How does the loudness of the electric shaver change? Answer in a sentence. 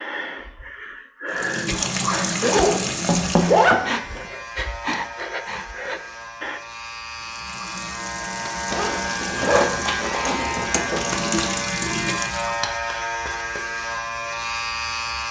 The volume of the electric shaver goes up.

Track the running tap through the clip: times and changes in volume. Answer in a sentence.
The running tap can be heard briefly from 1.3 to 3.8 s; and from 7.2 to 12.7 s, getting louder.